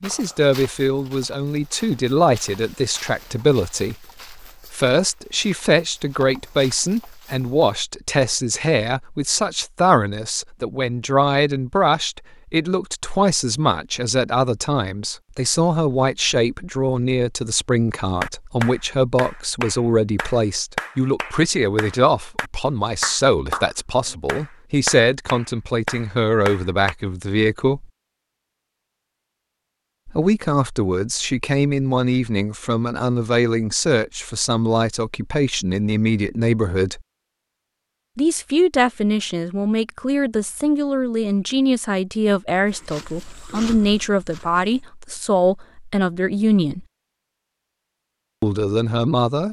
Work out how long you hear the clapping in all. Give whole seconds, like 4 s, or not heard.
9 s.